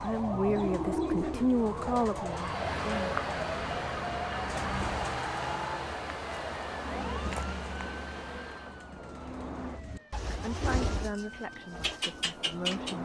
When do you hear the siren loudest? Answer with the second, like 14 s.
3 s.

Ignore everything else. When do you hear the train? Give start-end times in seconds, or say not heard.
2.1-8.9.